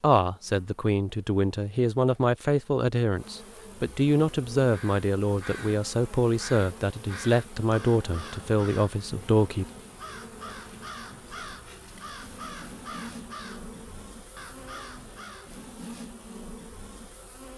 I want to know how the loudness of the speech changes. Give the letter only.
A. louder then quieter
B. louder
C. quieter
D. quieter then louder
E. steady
E.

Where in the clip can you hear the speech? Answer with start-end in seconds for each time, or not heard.
0.0-9.7.